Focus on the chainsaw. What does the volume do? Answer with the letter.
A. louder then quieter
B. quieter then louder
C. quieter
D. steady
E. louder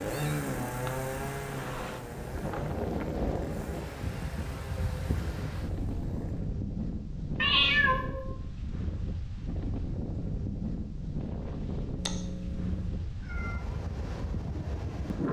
C.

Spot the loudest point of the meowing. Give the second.
8 s.